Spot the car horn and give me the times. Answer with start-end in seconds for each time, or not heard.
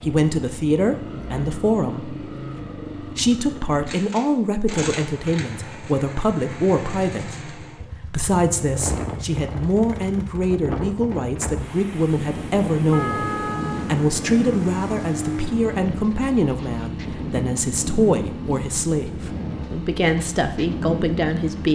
12.9-13.9.